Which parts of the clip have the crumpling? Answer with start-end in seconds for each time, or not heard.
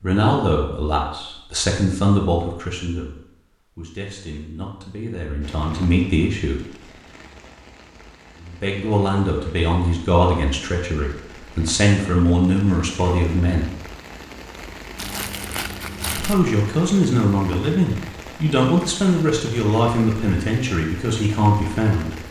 14.9-16.4.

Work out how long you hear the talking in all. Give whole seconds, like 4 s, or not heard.
18 s.